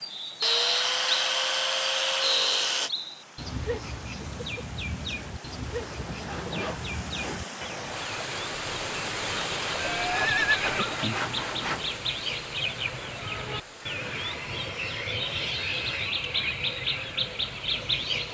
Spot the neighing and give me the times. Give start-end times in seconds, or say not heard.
9.8-10.9.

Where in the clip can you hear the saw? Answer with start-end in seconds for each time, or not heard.
0.4-2.9, 6.0-7.5, 9.7-11.9, 13.9-16.1.